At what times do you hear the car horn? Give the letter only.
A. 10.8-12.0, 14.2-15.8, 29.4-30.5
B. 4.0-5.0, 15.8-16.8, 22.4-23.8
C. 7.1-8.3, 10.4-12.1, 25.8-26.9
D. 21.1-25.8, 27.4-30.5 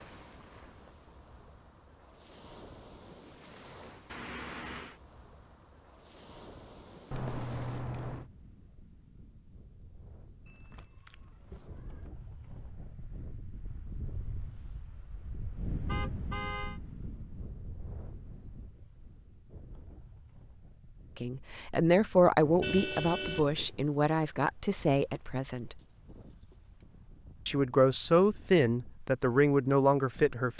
B.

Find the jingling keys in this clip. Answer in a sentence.
You can hear the jingling keys from 7.1 to 8.3 s, from 10.4 to 12.1 s and from 25.8 to 26.9 s.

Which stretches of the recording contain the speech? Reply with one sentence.
You can hear the speech from 21.1 to 25.8 s and from 27.4 to 30.5 s.